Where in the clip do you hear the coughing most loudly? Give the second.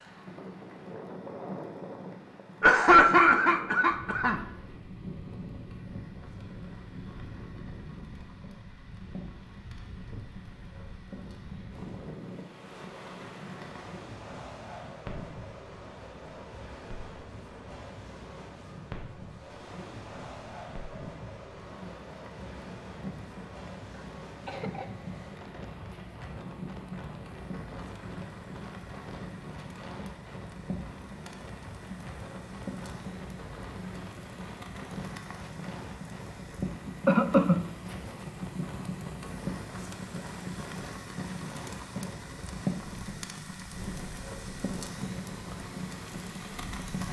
3 s.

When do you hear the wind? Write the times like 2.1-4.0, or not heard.
0.0-46.9.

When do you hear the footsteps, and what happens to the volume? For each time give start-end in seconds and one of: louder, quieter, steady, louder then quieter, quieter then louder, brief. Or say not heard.
not heard.